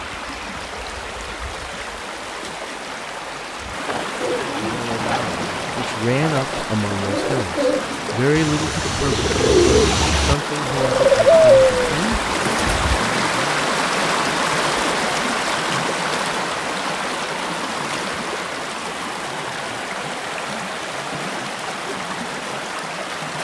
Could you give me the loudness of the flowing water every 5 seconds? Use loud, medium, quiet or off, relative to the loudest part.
medium, medium, loud, loud, medium.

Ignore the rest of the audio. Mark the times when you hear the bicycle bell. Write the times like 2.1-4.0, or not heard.
not heard.